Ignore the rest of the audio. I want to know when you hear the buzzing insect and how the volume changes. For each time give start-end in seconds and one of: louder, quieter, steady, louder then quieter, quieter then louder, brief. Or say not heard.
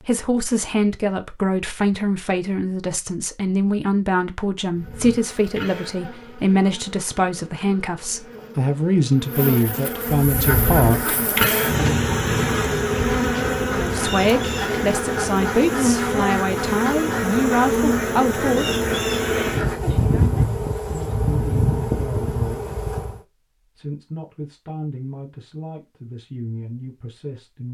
4.7-23.2 louder.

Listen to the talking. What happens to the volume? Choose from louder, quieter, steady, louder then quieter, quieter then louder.
quieter.